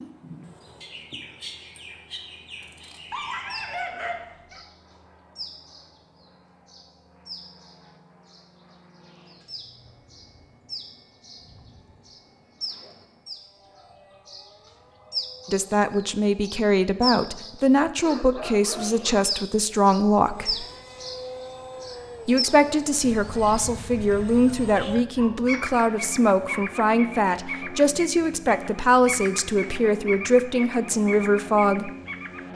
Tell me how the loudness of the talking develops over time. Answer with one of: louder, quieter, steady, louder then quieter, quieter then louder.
steady.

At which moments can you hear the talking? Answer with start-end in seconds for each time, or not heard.
15.4-20.6, 22.2-31.9.